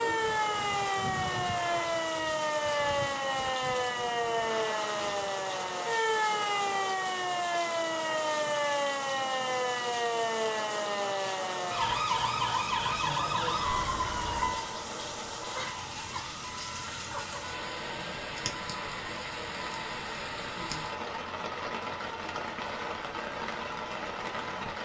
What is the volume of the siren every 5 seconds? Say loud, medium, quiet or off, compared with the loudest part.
loud, loud, loud, quiet, quiet.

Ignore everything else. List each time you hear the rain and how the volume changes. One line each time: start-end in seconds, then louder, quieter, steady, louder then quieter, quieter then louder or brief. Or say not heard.
0.0-24.8 steady.